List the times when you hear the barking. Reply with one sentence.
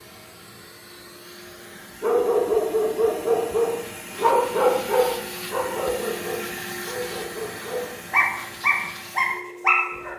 The barking can be heard from 2.0 to 10.1 s.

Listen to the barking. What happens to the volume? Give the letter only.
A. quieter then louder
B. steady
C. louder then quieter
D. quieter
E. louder
A.